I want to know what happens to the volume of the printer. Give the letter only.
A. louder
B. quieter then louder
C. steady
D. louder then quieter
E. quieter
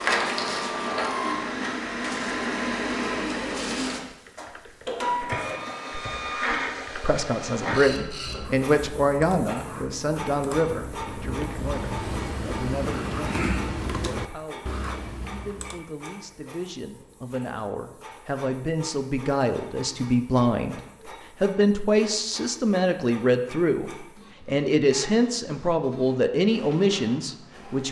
E.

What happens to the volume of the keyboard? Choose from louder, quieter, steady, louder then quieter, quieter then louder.
louder.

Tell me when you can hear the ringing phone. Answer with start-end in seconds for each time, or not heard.
not heard.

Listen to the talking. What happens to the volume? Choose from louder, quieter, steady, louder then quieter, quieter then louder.
quieter then louder.